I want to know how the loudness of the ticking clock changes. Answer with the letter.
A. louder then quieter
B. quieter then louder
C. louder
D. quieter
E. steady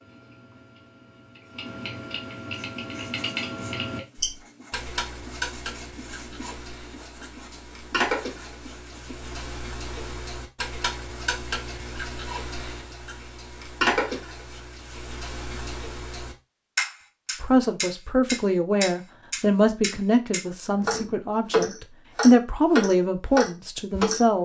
C.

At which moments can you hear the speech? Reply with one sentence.
You can hear the speech from 17.4 to 24.4 s.